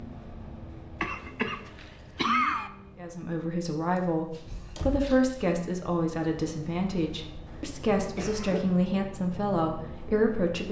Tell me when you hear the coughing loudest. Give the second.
2 s.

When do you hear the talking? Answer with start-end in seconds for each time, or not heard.
3.0-10.6.